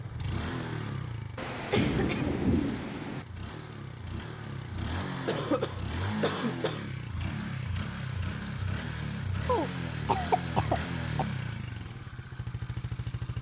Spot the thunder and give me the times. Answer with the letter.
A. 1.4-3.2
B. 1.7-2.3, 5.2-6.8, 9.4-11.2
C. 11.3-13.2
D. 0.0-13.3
A.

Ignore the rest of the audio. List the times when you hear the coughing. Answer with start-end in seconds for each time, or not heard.
1.7-2.3, 5.2-6.8, 9.4-11.2.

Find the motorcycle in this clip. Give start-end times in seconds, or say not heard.
0.0-13.3.